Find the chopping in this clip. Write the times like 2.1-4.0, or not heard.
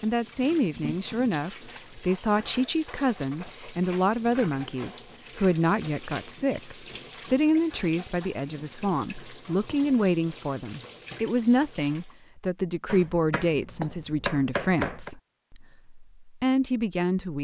12.8-15.1.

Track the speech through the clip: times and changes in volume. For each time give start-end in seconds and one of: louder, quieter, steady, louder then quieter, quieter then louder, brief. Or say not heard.
0.0-17.3 steady.